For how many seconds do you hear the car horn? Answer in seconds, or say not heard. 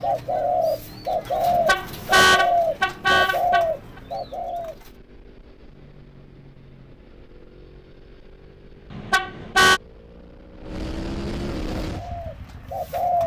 3 s.